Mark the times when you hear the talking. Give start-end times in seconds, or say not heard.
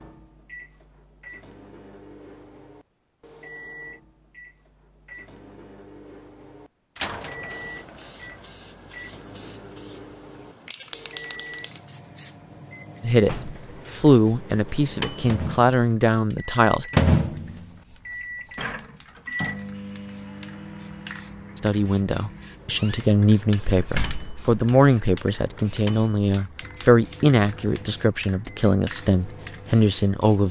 13.0-16.9, 21.6-30.4.